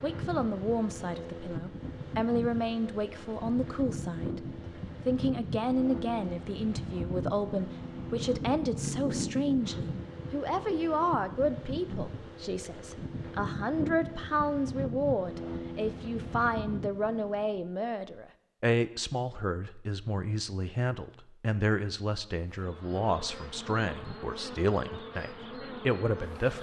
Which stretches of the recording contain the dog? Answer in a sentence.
The dog can't be heard in this clip.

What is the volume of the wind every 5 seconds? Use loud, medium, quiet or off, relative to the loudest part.
loud, loud, loud, loud, off, off.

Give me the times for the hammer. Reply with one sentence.
The hammer can't be heard in this clip.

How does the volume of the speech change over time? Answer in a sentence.
The loudness of the speech stays about the same.